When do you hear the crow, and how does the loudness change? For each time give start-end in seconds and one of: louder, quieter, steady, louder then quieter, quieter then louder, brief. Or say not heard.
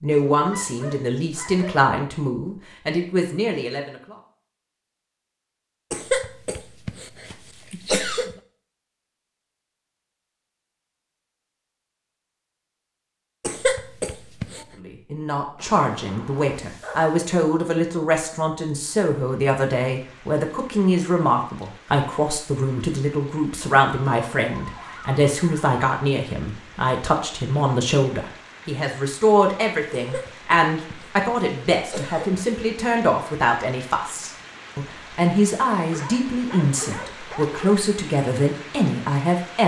not heard.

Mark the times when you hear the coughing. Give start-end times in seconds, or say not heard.
5.9-8.3, 13.4-14.7, 29.9-32.5.